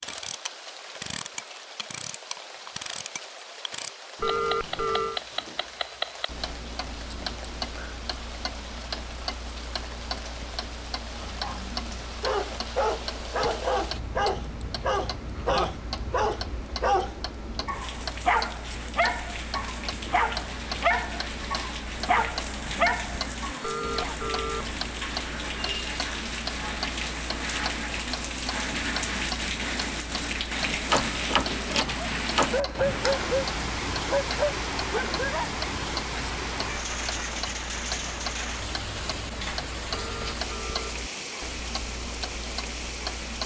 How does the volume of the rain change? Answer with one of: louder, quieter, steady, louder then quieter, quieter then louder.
louder.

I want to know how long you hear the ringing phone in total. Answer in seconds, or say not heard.
3 s.